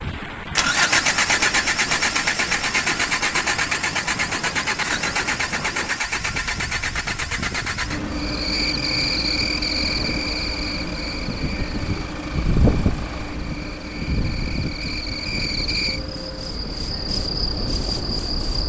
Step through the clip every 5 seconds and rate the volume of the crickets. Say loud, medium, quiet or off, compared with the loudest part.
off, loud, medium, loud.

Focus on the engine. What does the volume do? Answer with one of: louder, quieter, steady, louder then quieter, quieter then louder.
quieter.